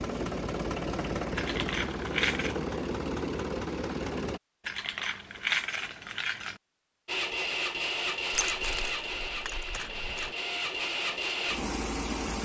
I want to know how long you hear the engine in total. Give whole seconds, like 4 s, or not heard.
10 s.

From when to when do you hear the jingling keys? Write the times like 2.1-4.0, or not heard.
1.4-2.5, 4.7-6.6, 8.3-10.3.